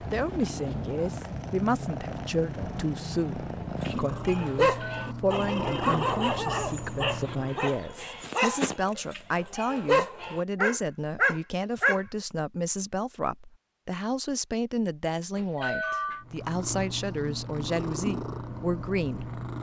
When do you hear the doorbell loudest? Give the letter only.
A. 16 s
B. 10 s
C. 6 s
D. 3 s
A.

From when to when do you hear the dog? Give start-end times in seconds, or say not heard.
3.8-12.0.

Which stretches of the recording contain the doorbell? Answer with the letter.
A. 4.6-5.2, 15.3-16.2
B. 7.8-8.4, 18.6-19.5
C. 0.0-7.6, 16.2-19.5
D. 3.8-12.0
A.